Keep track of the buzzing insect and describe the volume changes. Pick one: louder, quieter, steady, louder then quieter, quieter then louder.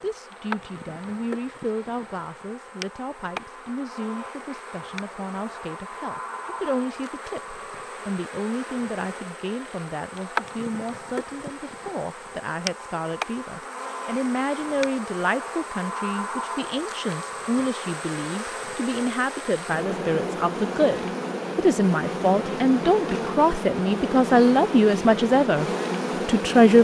louder.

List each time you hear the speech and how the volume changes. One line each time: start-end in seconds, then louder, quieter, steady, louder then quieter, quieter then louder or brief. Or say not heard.
0.0-25.6 louder
26.2-26.7 brief.